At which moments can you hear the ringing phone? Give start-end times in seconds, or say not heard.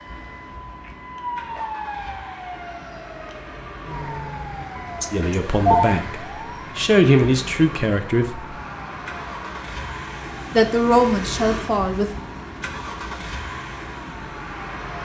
5.0-6.0.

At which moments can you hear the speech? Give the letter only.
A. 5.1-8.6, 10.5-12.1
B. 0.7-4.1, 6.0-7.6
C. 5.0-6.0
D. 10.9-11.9
A.